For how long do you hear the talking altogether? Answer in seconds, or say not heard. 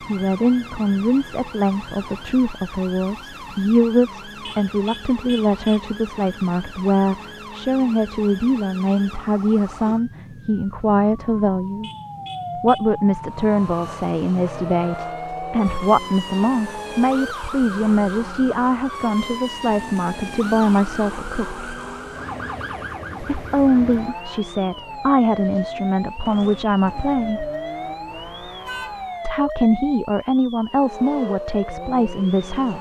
29 s.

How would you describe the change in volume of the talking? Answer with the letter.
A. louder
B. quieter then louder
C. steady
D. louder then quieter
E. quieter
C.